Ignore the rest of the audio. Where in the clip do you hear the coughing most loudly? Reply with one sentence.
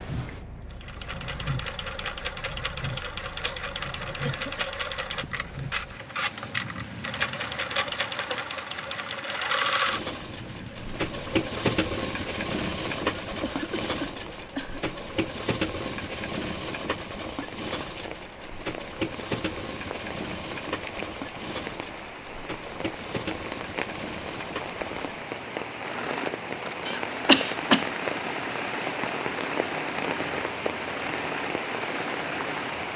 The loudest moment of the coughing is at 27 seconds.